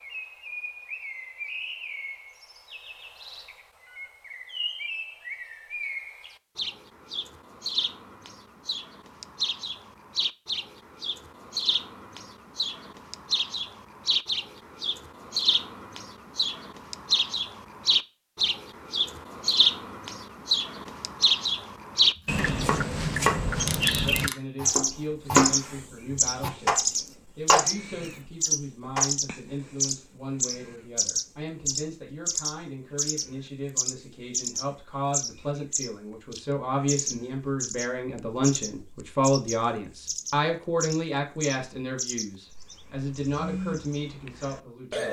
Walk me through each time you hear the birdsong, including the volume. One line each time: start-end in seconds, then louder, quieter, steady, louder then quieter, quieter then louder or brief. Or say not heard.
0.0-45.0 louder then quieter.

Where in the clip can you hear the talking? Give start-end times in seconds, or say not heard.
23.9-45.0.